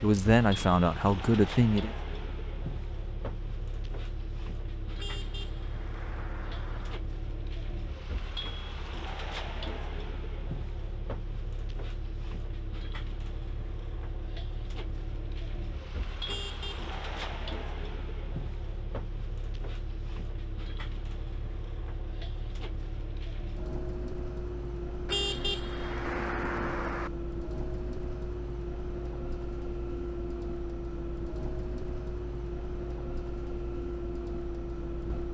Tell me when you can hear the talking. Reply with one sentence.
You can hear the talking from 0.0 to 1.9 s.